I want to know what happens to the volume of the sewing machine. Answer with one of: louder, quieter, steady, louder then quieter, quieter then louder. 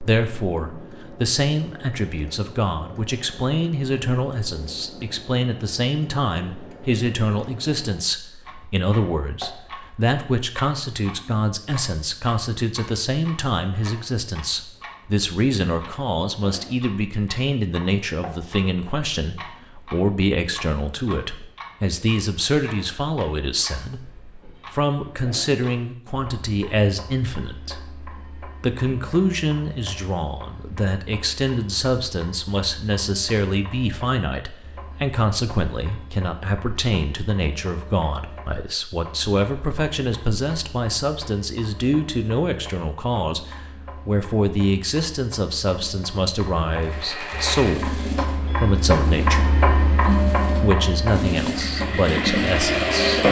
quieter then louder.